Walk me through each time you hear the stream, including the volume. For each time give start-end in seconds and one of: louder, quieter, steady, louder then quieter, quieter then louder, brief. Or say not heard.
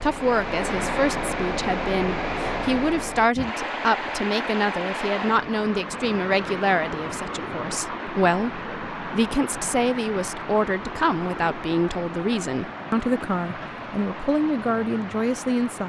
0.0-15.8 quieter.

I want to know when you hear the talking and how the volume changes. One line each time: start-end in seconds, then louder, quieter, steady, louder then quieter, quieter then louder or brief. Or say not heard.
0.0-15.8 steady.